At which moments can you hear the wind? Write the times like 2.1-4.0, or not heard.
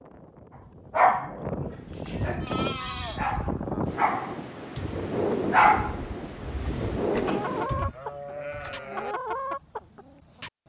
0.0-7.7.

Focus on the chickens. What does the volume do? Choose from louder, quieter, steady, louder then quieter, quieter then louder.
louder.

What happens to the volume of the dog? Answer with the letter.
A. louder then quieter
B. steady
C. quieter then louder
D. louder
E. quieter
A.